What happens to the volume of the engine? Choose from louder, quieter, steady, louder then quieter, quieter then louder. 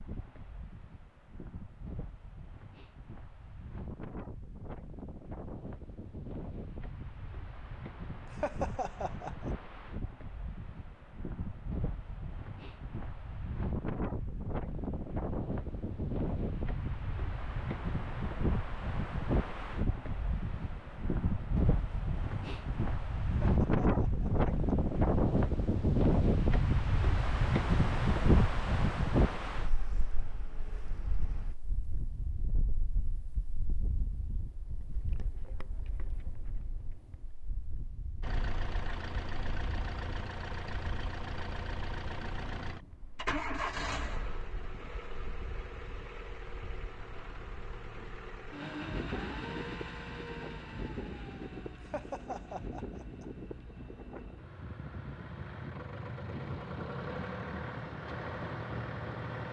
quieter then louder.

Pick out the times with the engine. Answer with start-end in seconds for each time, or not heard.
38.2-59.4.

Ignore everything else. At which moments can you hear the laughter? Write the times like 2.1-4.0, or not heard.
8.3-9.6, 23.6-24.5, 51.8-53.2.